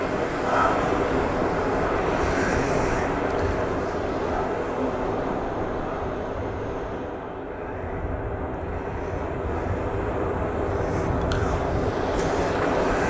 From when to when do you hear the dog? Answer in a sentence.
You can't hear the dog here.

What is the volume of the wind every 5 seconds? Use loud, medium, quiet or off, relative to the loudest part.
loud, medium, loud.